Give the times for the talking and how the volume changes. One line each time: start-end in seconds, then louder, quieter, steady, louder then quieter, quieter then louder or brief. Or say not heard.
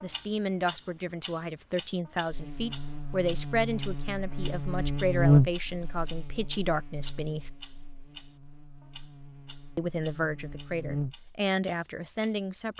0.0-7.5 steady
9.8-12.7 brief.